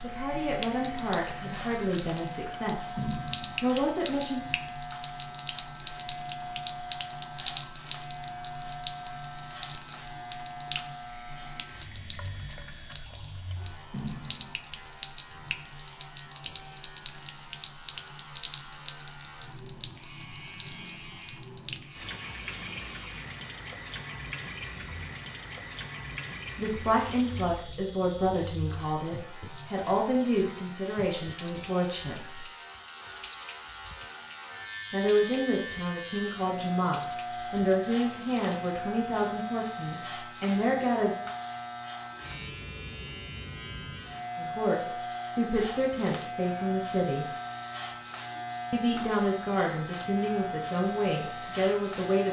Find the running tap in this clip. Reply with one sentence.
You can hear the running tap from 0.0 to 38.8 s.